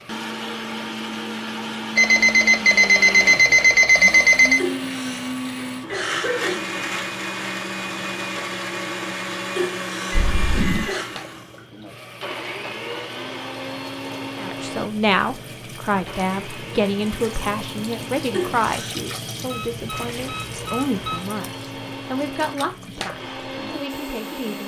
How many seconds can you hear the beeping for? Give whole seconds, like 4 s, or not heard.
5 s.